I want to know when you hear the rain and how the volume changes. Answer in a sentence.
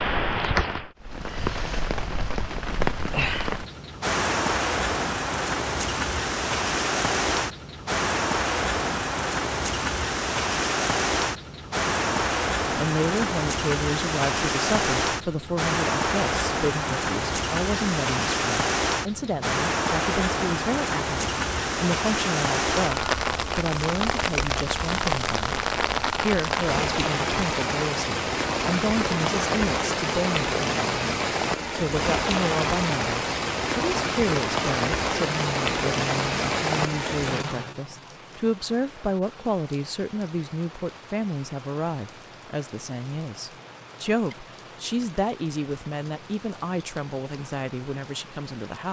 You can hear the rain from 0.0 to 48.8 s, getting quieter.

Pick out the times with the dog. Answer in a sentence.
You can't hear the dog here.